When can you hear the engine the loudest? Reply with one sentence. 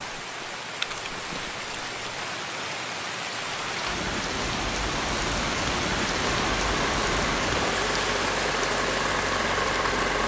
The volume of the engine peaks at 10 seconds.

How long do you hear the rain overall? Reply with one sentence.
The rain can be heard for 10 seconds in total.